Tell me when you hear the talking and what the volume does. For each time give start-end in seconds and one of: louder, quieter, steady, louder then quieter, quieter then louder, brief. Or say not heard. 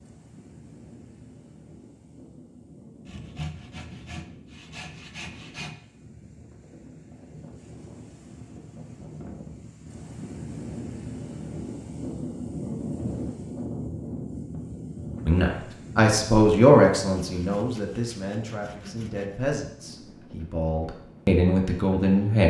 15.2-22.4 quieter then louder.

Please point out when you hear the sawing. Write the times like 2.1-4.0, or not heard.
3.0-5.8, 17.3-19.4.